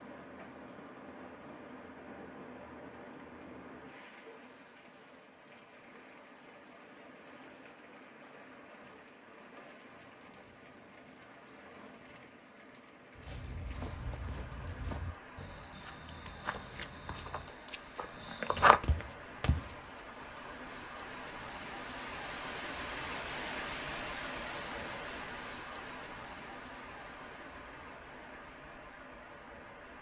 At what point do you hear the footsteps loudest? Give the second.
19 s.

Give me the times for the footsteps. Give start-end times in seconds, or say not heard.
13.2-19.8.